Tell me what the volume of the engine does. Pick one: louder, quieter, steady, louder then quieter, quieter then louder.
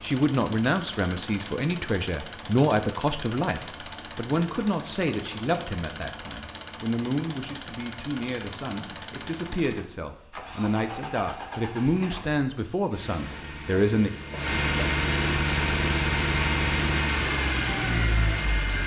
louder.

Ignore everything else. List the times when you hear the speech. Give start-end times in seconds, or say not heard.
0.0-14.1.